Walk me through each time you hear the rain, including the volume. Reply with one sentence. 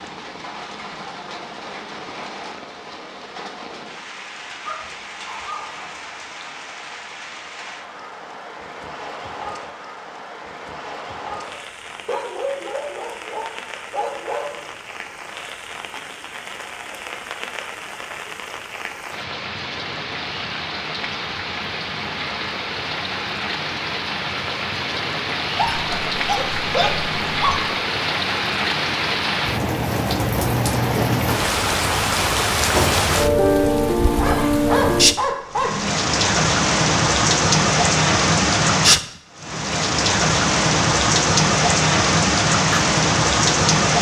The rain can be heard from 0.0 to 43.9 s, getting louder.